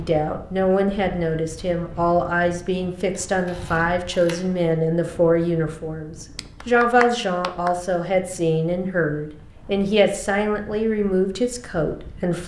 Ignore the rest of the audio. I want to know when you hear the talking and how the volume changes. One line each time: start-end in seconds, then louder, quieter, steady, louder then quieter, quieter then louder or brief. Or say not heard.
0.0-12.4 steady.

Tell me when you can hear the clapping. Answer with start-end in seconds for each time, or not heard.
6.3-7.8.